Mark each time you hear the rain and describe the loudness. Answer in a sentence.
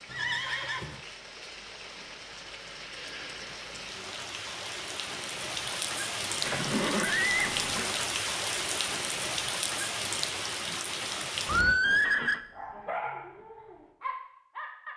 You can hear the rain from 0.0 to 11.8 s, getting louder.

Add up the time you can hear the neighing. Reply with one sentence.
The neighing can be heard for 3 seconds in total.